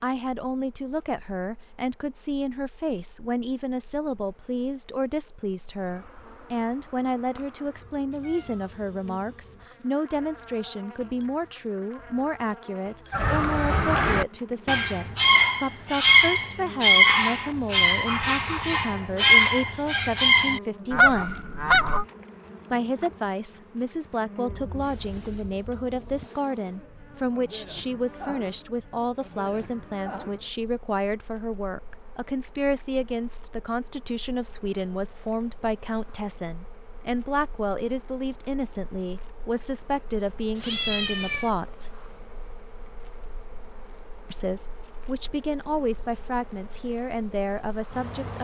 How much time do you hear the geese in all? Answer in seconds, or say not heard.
9 s.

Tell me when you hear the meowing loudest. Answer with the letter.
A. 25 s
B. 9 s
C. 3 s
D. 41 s
D.